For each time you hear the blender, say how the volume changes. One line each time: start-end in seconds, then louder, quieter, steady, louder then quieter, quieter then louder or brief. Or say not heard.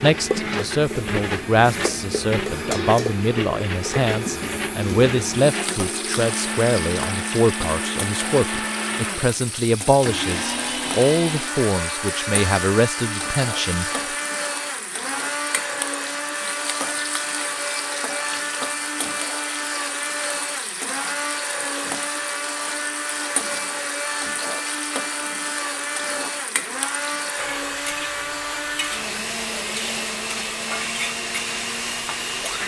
0.0-32.6 steady.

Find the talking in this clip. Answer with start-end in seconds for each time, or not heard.
0.0-14.1.